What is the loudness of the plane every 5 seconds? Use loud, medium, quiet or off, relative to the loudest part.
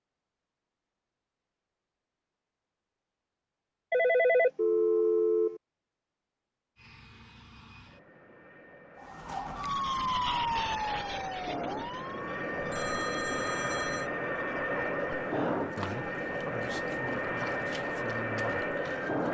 off, quiet, loud, loud.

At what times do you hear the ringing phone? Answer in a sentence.
You can hear the ringing phone from 3.9 to 5.6 s and from 12.6 to 14.1 s.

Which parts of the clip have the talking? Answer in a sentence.
You can hear the talking from 15.8 to 18.6 s.